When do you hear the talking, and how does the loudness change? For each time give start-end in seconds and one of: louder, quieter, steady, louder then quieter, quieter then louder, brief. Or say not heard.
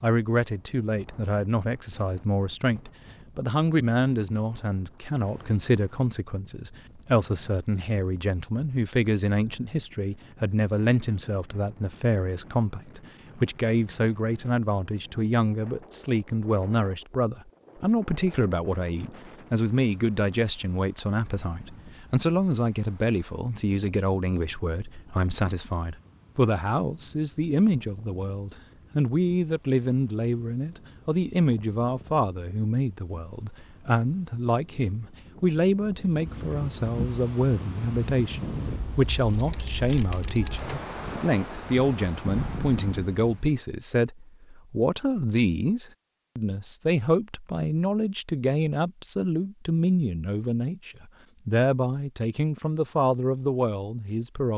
0.0-54.5 steady.